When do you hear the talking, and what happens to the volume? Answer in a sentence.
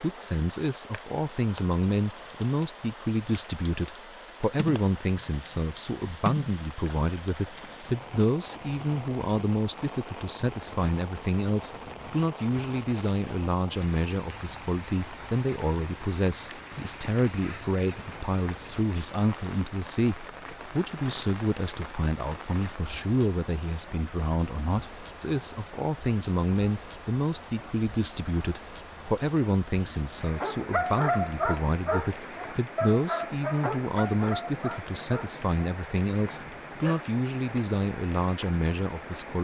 The talking can be heard from 0.0 to 39.4 s, at a steady volume.